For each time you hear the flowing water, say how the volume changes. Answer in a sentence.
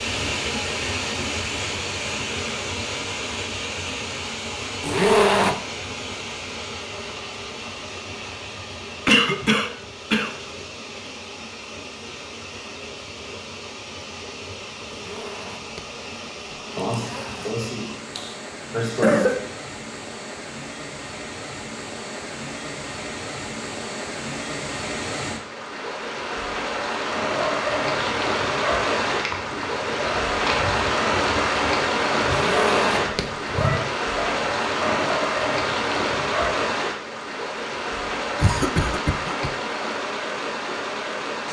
You can hear the flowing water from 0.0 to 41.4 s, getting quieter then louder.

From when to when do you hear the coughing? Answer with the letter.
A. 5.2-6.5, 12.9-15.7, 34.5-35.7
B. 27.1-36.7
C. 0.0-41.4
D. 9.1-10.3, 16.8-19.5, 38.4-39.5
D.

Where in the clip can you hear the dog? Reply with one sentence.
The dog can be heard from 27.1 to 36.7 s.